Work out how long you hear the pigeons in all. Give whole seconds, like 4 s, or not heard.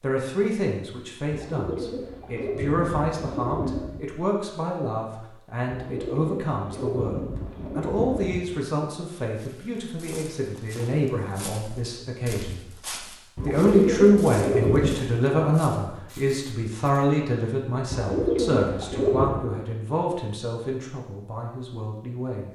9 s.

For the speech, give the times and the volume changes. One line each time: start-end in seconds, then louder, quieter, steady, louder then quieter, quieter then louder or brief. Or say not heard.
0.0-12.6 steady
13.4-22.4 quieter.